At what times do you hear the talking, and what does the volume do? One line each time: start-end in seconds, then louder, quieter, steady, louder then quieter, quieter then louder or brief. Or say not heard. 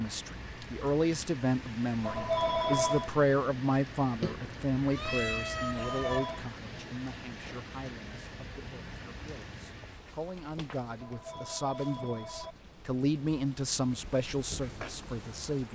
0.0-15.7 quieter then louder.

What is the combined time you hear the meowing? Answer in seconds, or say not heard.
2 s.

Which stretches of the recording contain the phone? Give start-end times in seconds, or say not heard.
2.0-3.1, 5.8-6.5, 11.0-12.6.